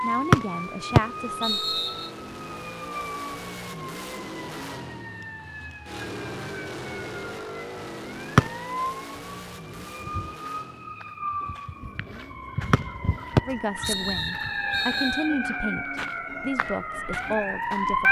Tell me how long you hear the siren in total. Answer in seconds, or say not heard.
18 s.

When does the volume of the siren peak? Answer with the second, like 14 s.
18 s.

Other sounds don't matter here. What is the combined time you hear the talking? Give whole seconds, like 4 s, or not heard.
6 s.